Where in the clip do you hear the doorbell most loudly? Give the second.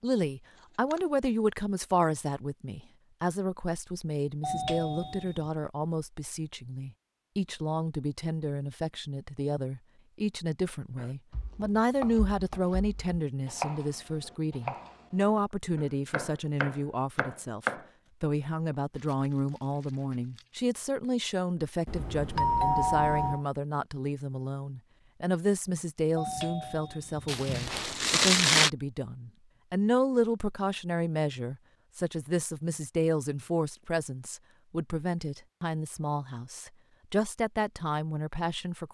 23 s.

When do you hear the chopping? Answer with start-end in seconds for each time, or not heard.
10.9-17.9.